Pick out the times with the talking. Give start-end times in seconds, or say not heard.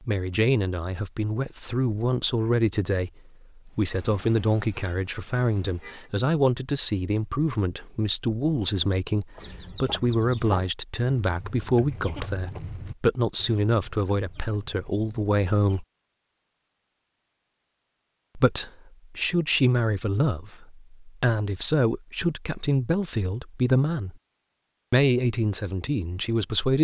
0.0-15.8, 18.4-24.1, 24.9-26.8.